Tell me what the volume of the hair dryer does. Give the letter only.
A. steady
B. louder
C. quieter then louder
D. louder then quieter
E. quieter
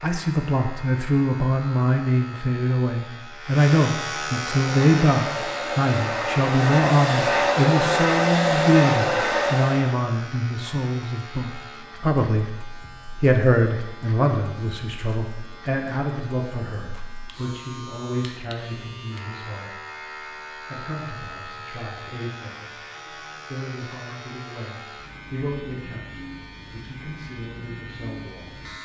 B.